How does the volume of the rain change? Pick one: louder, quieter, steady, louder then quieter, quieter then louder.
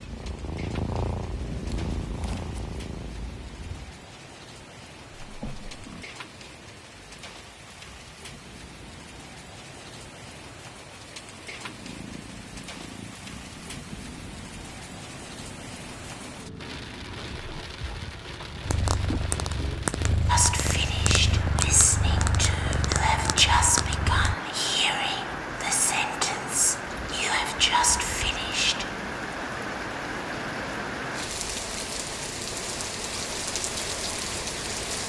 louder.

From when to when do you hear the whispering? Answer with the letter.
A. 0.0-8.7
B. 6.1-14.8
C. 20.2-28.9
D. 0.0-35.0
C.